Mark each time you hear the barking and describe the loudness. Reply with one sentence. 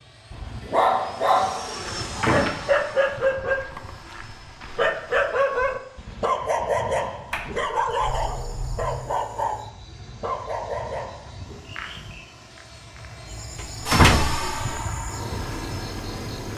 The barking can be heard from 0.3 to 11.6 s, getting quieter.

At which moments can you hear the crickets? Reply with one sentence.
The crickets can be heard from 7.9 to 16.5 s.